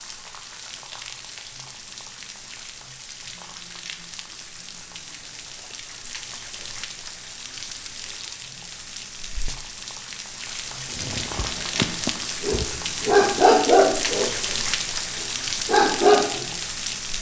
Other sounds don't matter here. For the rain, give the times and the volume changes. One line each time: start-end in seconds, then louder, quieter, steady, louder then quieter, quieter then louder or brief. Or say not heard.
0.0-17.1 louder.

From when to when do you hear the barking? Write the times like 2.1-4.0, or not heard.
10.9-16.4.